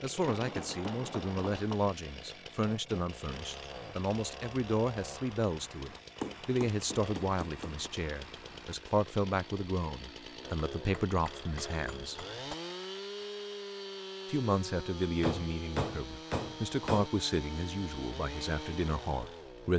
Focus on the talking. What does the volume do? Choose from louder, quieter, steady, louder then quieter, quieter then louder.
steady.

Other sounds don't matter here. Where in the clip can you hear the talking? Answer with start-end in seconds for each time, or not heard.
0.0-12.2, 14.2-19.7.